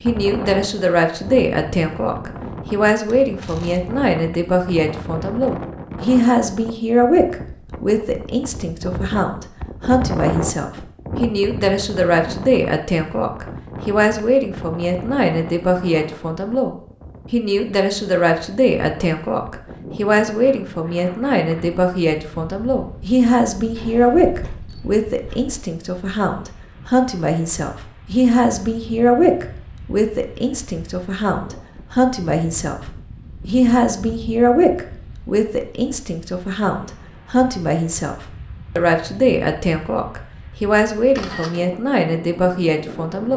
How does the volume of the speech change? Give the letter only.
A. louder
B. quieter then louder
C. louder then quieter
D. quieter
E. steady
E.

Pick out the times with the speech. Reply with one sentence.
You can hear the speech from 0.0 to 43.3 s.